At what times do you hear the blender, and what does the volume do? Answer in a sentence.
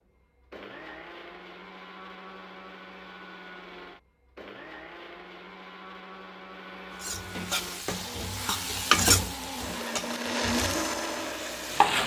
The blender can be heard from 0.0 to 12.0 s, getting louder.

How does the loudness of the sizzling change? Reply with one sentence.
The volume of the sizzling goes up, then down.